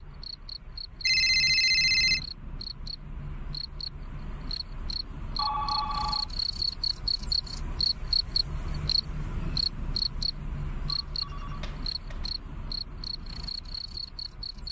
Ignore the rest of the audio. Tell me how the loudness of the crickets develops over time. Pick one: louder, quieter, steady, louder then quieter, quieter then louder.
louder then quieter.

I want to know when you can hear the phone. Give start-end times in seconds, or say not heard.
1.1-2.2, 5.3-6.3, 10.8-12.3.